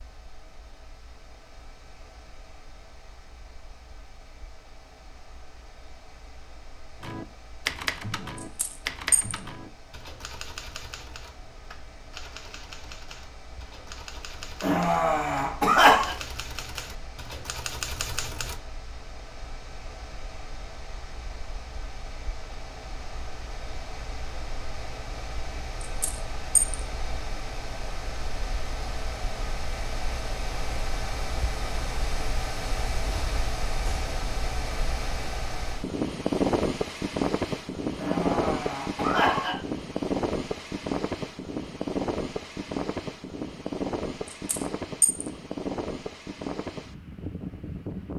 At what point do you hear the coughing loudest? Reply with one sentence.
The loudest moment of the coughing is at 16 seconds.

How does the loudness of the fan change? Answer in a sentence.
The loudness of the fan goes up.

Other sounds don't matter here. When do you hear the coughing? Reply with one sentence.
You can hear the coughing from 14.6 to 16.1 s and from 38.0 to 39.5 s.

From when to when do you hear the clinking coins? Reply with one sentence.
You can hear the clinking coins from 8.6 to 9.3 s, from 25.8 to 26.8 s and from 44.5 to 45.2 s.